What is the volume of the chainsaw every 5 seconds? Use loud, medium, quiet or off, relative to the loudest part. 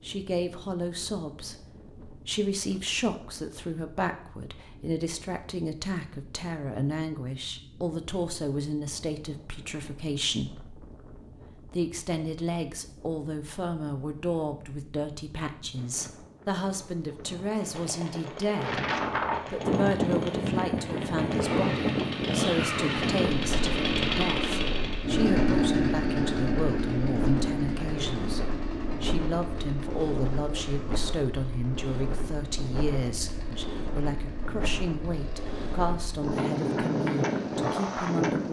off, off, off, quiet, loud, loud, quiet, quiet.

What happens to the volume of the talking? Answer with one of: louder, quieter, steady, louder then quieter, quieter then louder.
steady.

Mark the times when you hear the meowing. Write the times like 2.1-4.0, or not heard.
not heard.